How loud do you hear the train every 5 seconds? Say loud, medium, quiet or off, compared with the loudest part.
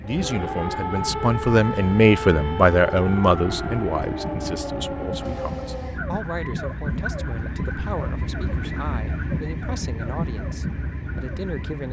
medium, loud, loud.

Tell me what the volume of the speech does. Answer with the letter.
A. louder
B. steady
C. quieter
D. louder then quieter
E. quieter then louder
C.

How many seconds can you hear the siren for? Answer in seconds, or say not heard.
12 s.